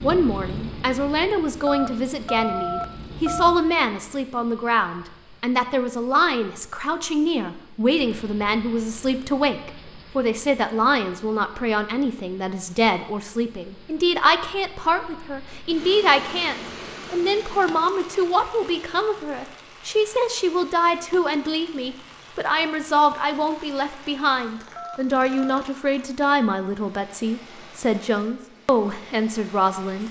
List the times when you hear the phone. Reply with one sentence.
You can hear the phone from 1.6 to 3.6 s and from 24.8 to 25.6 s.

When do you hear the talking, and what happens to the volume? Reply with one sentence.
You can hear the talking from 0.0 to 30.0 s, at a steady volume.